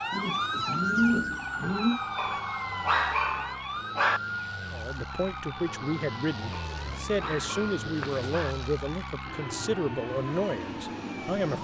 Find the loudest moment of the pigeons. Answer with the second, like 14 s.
1 s.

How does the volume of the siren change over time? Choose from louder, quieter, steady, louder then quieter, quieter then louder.
quieter.